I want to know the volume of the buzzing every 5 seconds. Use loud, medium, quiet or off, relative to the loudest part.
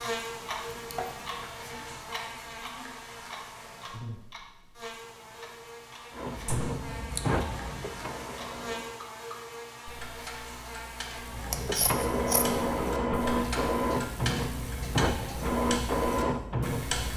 loud, loud, loud, off.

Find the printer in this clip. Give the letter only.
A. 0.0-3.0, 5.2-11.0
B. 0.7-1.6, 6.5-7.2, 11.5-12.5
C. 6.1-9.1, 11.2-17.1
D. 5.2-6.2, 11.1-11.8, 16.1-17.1
C.